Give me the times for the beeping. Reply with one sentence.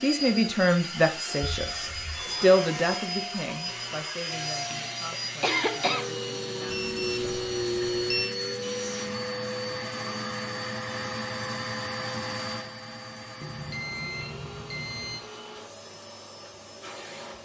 You can hear the beeping from 1.4 to 2.5 s, from 6.7 to 8.3 s and from 13.4 to 15.2 s.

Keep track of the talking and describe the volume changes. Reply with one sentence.
The loudness of the talking goes down.